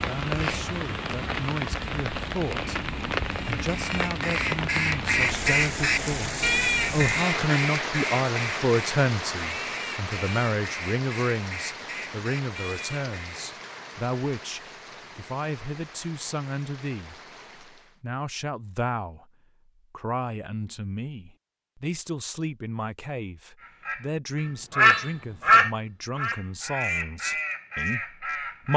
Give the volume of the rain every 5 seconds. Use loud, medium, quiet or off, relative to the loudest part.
loud, loud, medium, quiet, off, off.